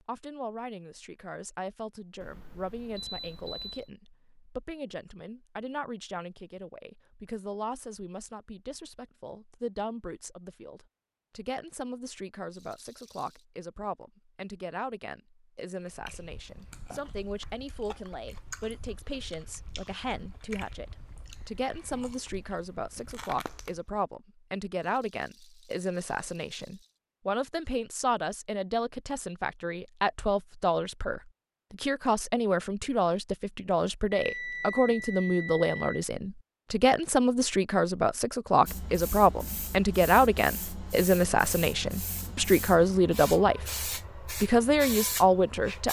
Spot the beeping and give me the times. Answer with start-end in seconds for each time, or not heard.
2.2-3.9, 34.1-36.0.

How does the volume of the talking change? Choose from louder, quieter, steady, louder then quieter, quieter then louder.
louder.